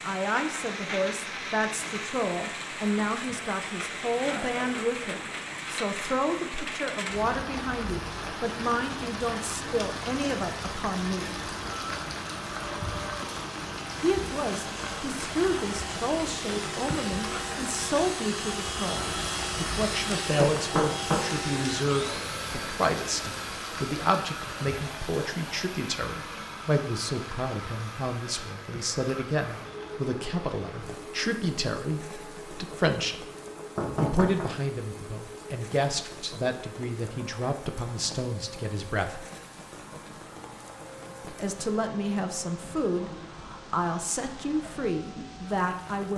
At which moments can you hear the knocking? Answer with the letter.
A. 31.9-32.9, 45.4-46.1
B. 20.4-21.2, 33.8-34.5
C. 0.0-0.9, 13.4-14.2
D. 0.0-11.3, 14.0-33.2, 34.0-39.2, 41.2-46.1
B.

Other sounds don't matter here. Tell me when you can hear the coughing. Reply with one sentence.
The coughing can't be heard in this clip.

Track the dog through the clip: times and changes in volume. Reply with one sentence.
You can't hear the dog here.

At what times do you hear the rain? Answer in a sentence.
You can hear the rain from 0.0 to 46.1 s.